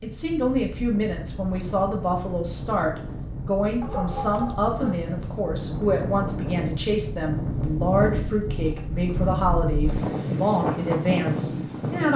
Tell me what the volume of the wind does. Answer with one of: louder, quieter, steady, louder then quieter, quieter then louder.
louder.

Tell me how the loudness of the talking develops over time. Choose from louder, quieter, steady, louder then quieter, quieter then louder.
steady.